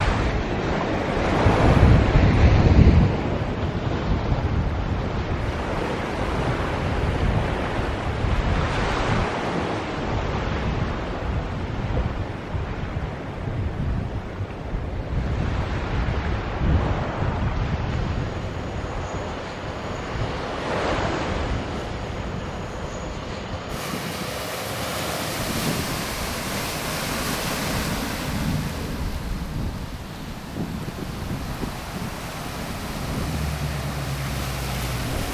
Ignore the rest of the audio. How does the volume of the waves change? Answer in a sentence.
The loudness of the waves goes down.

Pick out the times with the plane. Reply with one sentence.
The plane can be heard from 17.9 to 35.2 s.